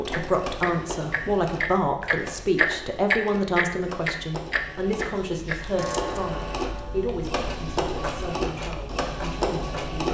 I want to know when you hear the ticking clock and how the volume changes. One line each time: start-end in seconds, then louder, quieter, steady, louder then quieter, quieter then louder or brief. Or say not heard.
0.1-10.0 louder then quieter.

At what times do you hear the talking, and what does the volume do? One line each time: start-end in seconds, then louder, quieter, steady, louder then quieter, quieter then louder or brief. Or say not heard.
0.0-10.0 quieter.